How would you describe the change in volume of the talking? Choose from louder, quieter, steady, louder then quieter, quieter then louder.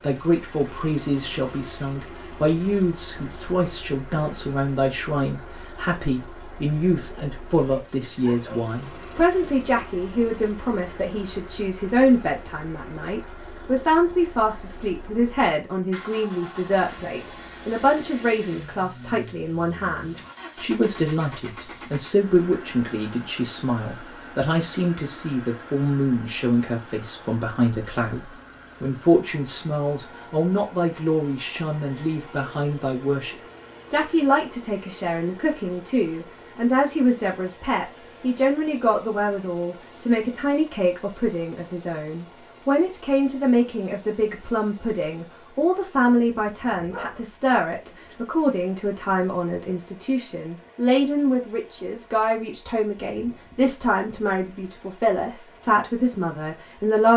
steady.